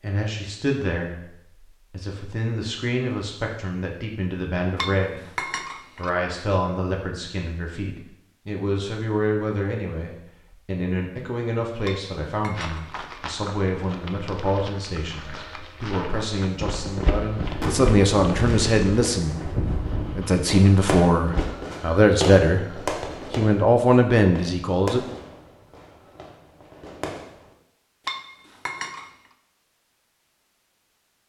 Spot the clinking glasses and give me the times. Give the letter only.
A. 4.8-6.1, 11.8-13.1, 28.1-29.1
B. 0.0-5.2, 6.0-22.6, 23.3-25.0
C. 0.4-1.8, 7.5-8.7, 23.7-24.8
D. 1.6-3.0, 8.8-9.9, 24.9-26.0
A.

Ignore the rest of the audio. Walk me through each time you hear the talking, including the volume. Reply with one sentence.
You can hear the talking from 0.0 to 5.2 s, getting quieter then louder; from 6.0 to 22.6 s, getting louder; and briefly from 23.3 to 25.0 s.